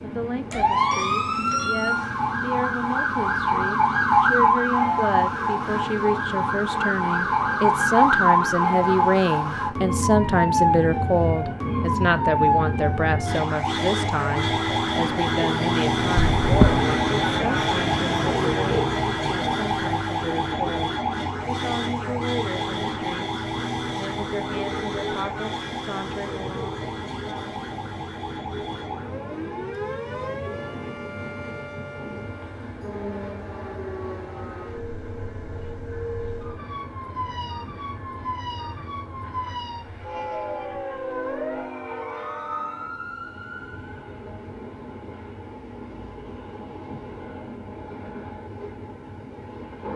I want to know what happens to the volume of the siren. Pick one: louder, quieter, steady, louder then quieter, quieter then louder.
quieter.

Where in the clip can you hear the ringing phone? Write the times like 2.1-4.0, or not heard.
16.1-16.9.